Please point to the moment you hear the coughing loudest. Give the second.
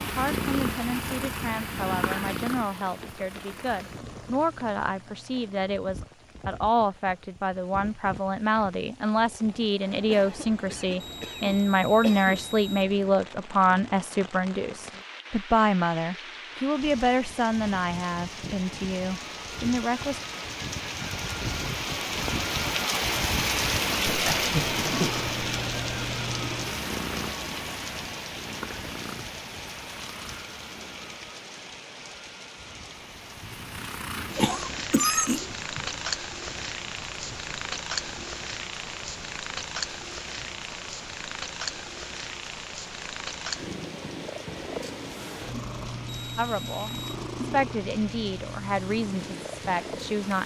35 s.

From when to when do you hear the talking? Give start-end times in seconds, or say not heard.
0.0-20.2, 46.4-50.4.